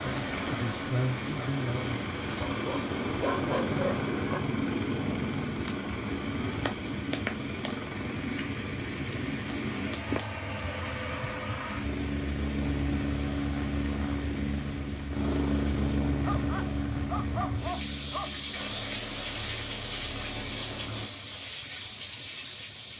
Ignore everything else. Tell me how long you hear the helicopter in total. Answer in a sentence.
The helicopter can be heard for 21 seconds in total.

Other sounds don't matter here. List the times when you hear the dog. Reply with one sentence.
The dog can be heard from 2.5 to 4.4 s and from 16.2 to 18.3 s.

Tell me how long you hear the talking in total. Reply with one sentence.
The talking can be heard for 2 seconds in total.